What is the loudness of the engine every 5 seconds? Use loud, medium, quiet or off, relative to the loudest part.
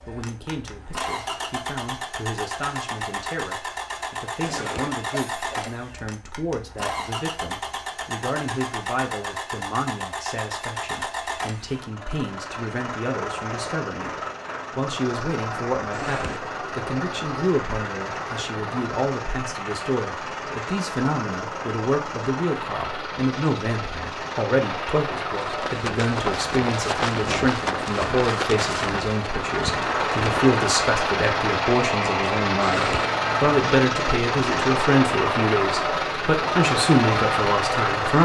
medium, medium, medium, medium, medium, medium, loud, loud.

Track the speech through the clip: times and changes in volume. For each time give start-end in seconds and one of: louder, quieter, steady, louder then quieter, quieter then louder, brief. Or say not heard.
0.1-14.1 steady
14.7-38.1 louder.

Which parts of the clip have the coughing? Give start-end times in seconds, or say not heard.
4.4-5.8, 15.9-16.4, 32.6-33.1.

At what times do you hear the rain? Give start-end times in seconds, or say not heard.
not heard.